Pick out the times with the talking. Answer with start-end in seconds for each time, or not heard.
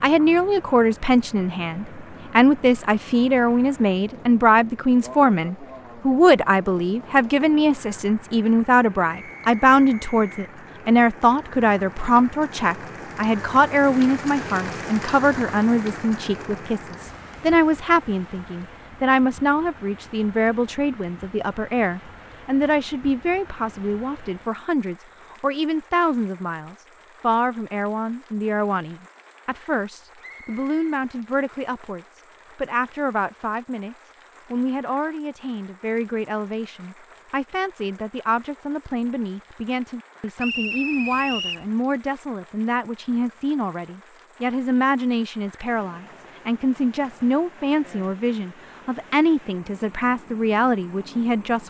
0.0-51.6.